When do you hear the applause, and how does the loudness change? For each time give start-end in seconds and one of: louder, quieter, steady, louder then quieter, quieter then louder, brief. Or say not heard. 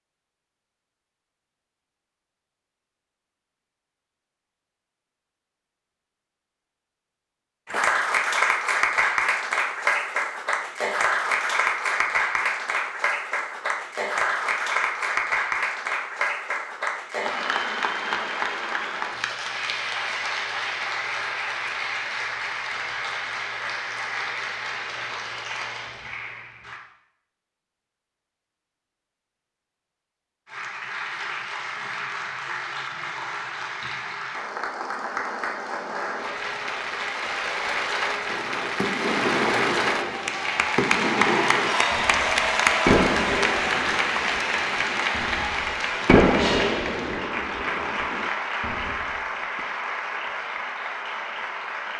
7.7-26.8 quieter
30.4-51.9 louder then quieter.